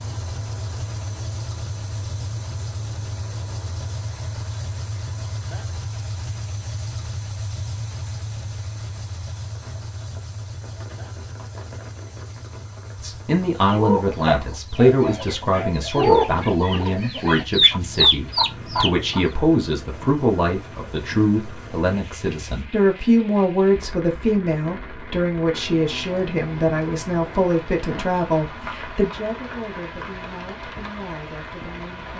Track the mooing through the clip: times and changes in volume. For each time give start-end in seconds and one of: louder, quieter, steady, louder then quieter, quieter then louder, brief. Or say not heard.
not heard.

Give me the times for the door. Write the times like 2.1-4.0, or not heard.
not heard.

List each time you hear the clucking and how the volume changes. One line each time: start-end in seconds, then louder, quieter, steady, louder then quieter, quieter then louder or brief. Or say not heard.
13.6-19.2 quieter then louder.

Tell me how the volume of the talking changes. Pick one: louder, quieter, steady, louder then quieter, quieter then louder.
quieter.